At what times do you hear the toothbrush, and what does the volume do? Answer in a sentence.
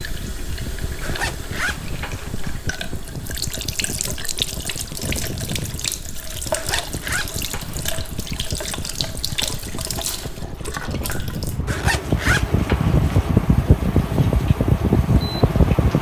You can't hear the toothbrush here.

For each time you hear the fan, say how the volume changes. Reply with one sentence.
You can hear the fan from 0.0 to 15.9 s, getting louder.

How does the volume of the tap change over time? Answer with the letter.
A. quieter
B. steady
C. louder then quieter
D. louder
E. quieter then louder
C.